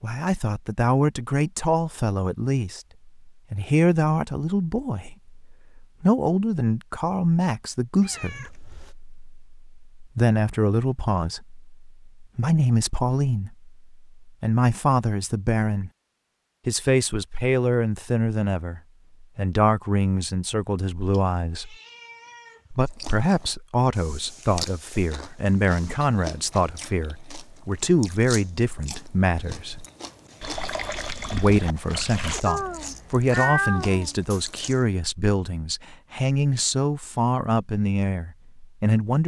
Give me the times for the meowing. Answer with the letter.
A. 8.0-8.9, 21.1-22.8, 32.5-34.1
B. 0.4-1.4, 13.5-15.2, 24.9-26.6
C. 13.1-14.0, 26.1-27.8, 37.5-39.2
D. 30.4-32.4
A.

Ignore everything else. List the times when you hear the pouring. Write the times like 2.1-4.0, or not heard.
30.4-32.4.